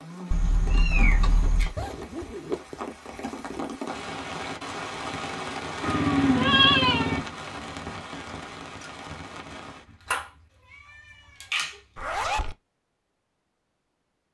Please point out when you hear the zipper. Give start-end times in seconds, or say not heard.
1.8-3.8, 11.9-12.6.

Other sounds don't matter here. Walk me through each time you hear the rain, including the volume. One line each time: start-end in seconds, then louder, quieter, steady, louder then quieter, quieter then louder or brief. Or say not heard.
0.0-10.2 louder then quieter.